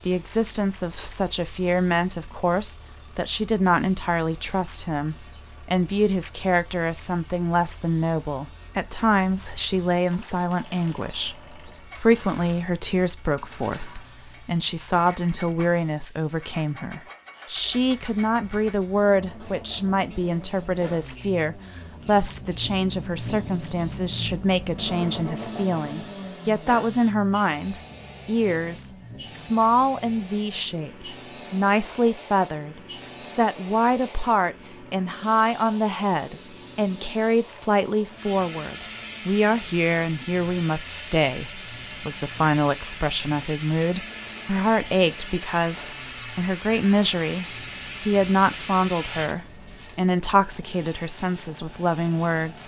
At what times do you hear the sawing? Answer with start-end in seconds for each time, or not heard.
not heard.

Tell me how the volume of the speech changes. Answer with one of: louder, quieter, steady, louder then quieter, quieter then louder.
steady.